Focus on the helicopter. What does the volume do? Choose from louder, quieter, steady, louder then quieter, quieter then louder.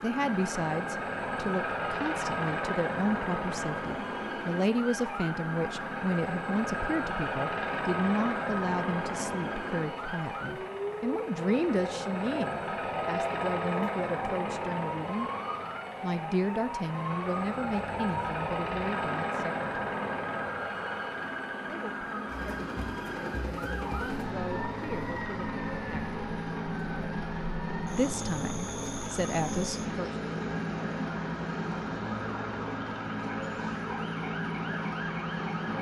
steady.